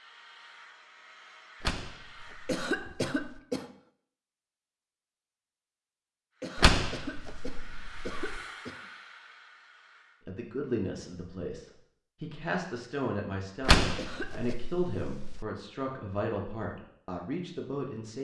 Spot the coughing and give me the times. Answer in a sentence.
You can hear the coughing from 2.5 to 3.8 s, from 6.4 to 8.9 s and from 13.9 to 14.6 s.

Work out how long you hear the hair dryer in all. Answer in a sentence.
The hair dryer can be heard for 7 seconds in total.